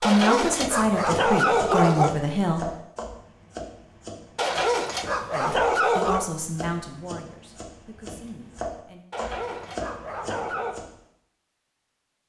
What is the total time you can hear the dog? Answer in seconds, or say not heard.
6 s.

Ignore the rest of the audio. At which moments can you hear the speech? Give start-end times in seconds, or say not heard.
0.0-2.7, 5.3-9.1.